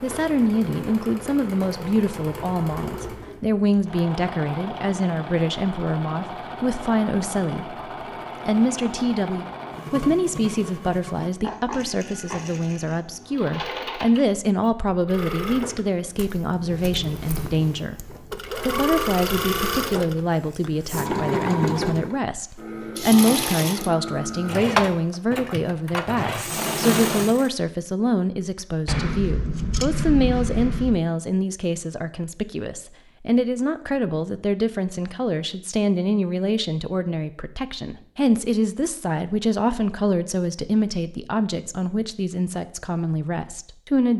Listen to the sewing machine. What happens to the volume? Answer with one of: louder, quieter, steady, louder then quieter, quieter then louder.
louder.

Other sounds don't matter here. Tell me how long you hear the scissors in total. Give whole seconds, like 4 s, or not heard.
2 s.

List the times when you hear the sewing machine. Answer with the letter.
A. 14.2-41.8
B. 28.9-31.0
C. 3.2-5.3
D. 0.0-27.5
D.